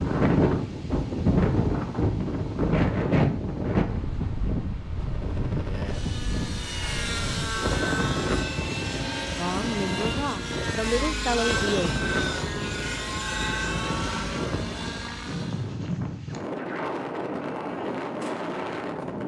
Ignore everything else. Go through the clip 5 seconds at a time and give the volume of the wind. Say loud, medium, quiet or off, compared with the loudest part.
loud, medium, medium, medium.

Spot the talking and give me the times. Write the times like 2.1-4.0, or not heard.
9.3-11.9.